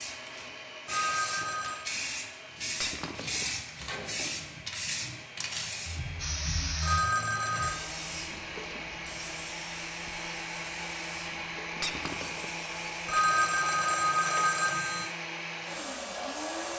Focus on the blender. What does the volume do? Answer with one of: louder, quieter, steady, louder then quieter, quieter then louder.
louder.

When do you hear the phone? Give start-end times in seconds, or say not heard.
0.8-1.9, 6.8-7.8, 13.1-15.1.